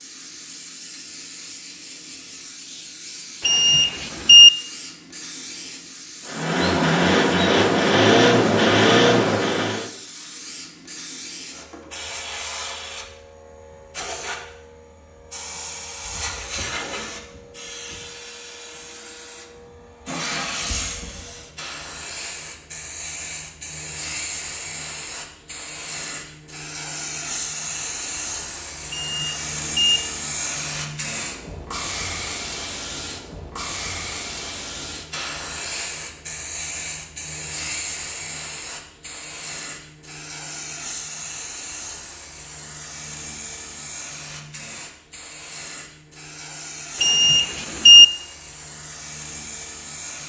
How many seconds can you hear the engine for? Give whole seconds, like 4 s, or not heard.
4 s.